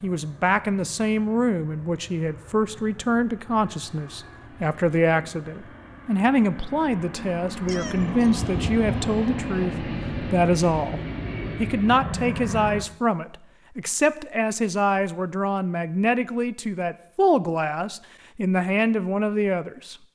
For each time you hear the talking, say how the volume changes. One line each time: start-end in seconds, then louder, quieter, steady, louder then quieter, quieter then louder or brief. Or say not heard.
0.0-11.0 steady
11.6-19.9 steady.